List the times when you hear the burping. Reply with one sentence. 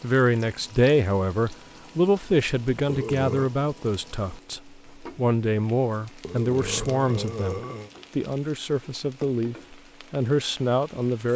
You can hear the burping from 2.9 to 3.5 s and from 6.2 to 7.9 s.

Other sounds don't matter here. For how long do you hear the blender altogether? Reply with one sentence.
You can't hear the blender here.